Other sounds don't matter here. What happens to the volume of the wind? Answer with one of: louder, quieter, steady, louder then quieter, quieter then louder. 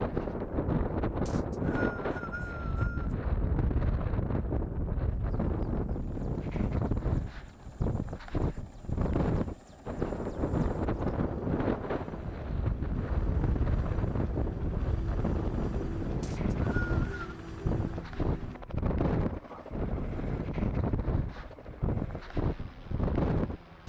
steady.